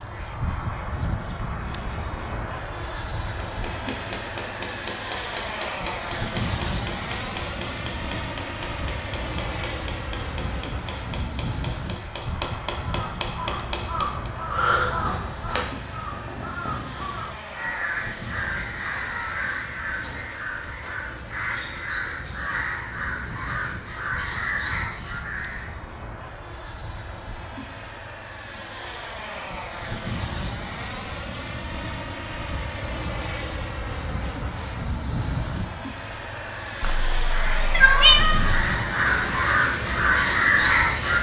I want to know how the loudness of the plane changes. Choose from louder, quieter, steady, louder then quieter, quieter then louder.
quieter then louder.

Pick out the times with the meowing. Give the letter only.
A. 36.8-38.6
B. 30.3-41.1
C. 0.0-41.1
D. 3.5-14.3
A.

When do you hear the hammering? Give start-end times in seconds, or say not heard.
3.5-14.3.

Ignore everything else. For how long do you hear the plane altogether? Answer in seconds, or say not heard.
41 s.